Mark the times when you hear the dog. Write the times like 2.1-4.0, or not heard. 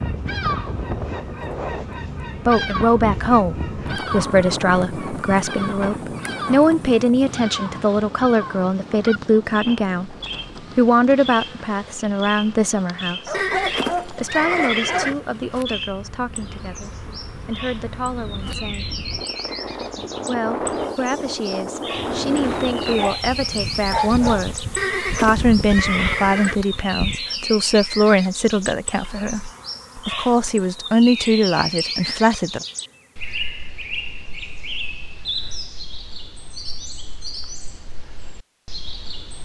13.2-15.2, 22.9-24.5.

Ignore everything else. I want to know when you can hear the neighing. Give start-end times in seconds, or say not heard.
13.3-15.2, 24.8-26.6.